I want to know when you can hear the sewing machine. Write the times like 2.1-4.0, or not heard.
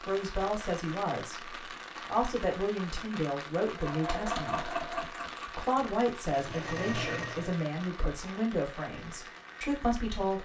3.6-7.5.